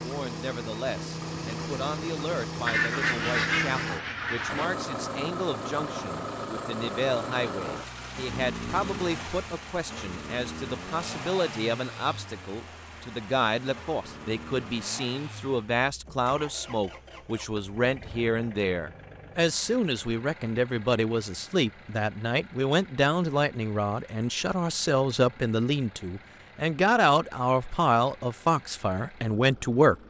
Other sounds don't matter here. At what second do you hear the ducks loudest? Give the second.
3 s.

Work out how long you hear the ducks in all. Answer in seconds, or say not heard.
2 s.